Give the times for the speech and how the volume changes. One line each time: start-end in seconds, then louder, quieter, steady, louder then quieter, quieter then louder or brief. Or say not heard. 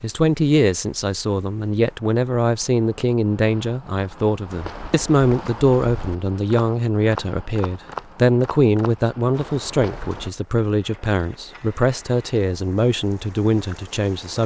0.0-14.4 steady.